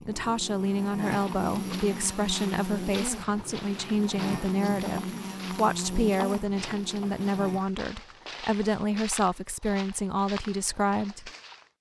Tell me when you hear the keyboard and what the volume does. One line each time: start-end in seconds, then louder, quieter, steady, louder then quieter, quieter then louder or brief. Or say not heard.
not heard.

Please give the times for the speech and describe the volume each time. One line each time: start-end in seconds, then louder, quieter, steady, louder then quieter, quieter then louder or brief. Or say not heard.
0.1-11.3 steady.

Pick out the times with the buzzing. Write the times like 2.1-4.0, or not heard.
0.0-7.7.